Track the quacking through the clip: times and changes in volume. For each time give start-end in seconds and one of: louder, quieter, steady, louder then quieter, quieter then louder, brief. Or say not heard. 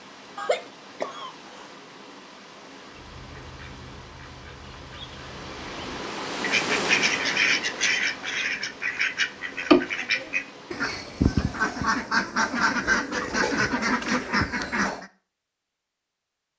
2.9-15.1 louder.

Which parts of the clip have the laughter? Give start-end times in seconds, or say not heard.
0.3-1.7.